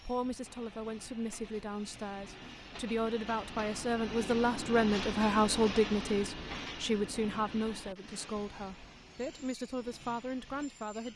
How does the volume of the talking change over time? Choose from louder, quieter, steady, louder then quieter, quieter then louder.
louder then quieter.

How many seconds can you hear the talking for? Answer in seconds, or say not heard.
11 s.